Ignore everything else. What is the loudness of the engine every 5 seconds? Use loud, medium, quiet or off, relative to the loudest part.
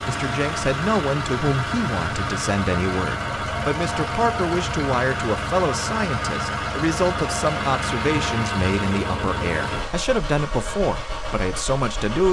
loud, loud, medium.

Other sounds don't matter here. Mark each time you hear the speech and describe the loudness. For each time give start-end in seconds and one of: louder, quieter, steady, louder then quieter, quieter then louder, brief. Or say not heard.
0.1-12.2 steady.